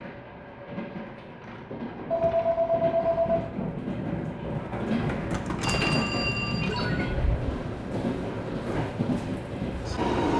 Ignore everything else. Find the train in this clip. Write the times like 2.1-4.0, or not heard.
0.0-10.3.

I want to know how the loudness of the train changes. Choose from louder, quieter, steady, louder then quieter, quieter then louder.
louder.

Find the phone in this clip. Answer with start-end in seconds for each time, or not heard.
2.1-3.5, 5.6-7.1.